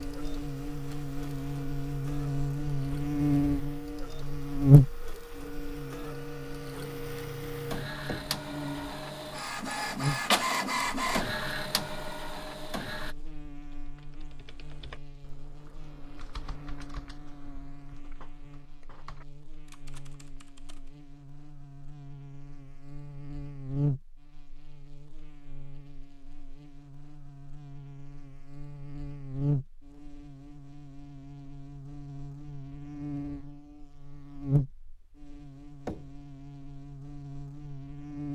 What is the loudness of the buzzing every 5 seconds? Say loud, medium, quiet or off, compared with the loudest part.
loud, quiet, quiet, quiet, quiet, quiet, medium, quiet.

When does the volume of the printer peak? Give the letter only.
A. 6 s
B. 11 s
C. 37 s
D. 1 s
B.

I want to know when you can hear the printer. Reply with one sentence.
You can hear the printer from 0.0 to 13.2 s.